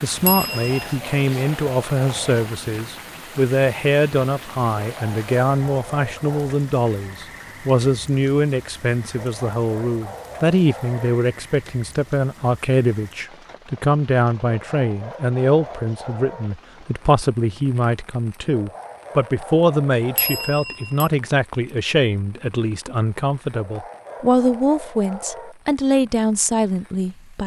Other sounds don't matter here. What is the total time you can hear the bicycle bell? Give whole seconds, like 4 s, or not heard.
2 s.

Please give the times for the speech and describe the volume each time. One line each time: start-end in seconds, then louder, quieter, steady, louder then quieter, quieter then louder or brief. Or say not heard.
0.0-27.4 steady.